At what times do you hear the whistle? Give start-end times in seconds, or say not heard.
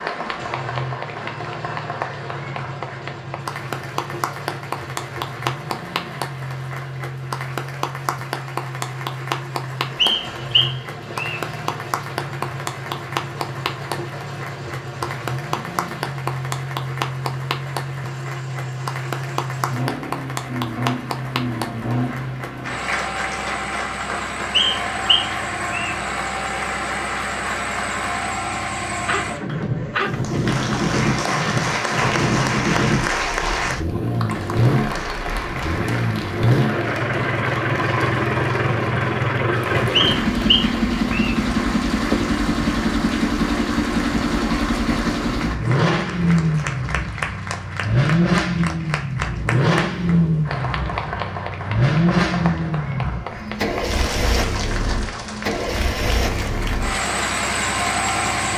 9.9-11.4, 24.5-25.9, 40.0-41.4.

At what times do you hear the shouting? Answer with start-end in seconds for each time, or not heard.
not heard.